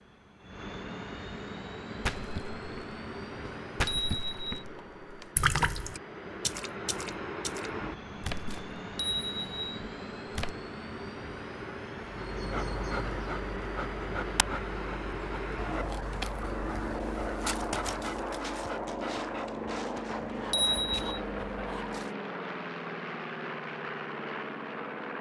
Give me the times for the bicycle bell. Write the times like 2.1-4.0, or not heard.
3.7-4.7, 8.6-9.8, 20.1-21.2.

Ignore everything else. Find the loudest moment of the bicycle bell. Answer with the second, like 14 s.
21 s.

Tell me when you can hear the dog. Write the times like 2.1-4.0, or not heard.
12.1-22.1.